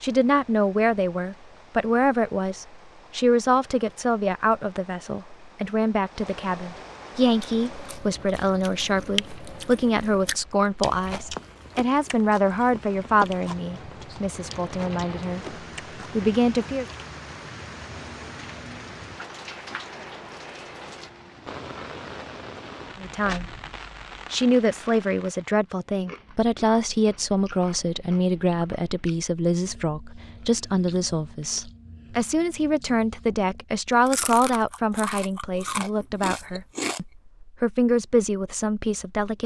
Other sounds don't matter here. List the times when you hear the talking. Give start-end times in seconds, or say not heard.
0.0-15.6, 16.1-16.9, 23.0-23.4, 24.3-39.4.